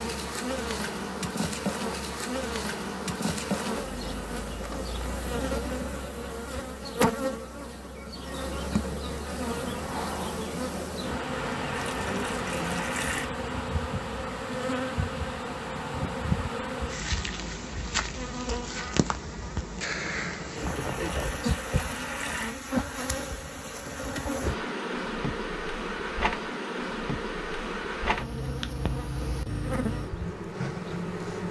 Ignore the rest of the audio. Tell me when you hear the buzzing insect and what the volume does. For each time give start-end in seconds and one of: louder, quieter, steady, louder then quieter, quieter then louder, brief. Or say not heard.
0.0-31.4 steady.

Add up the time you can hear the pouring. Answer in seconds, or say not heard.
4 s.